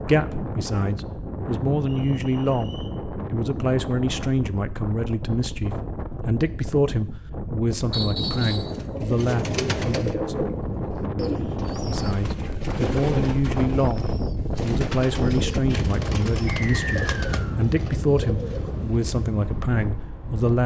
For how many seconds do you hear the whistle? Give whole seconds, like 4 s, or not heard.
3 s.